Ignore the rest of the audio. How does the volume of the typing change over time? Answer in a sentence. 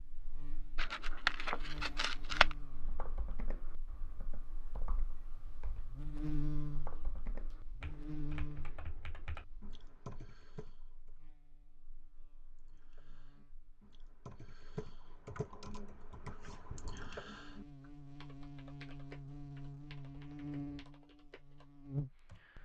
The loudness of the typing goes up, then down.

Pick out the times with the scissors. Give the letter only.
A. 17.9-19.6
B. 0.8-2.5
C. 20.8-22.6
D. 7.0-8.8
B.